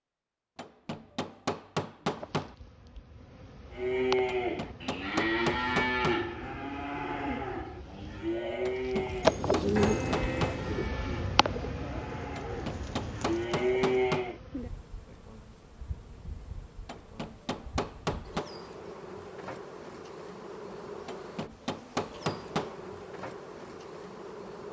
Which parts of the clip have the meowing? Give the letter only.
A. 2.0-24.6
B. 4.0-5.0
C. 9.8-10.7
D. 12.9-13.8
C.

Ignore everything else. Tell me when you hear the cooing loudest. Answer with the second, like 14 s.
10 s.